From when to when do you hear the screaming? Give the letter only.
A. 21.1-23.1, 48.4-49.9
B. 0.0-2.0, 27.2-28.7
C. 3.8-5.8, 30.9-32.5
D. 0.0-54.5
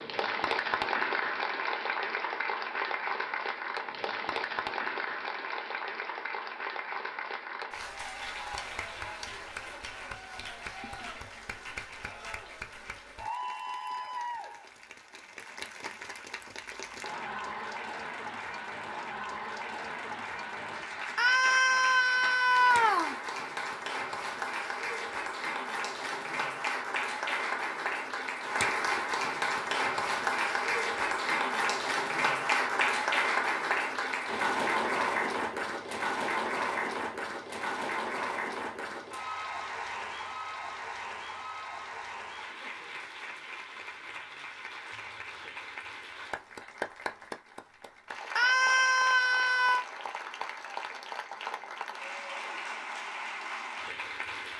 A.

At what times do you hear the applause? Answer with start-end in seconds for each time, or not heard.
0.0-54.5.